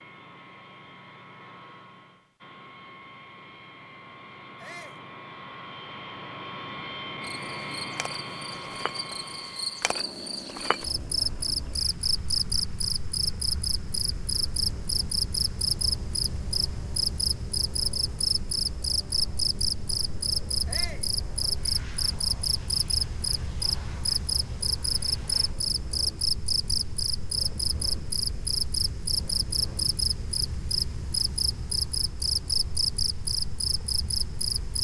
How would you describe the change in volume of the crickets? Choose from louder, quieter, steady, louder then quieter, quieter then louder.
steady.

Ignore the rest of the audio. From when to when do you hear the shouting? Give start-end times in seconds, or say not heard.
4.5-5.0, 20.6-21.1.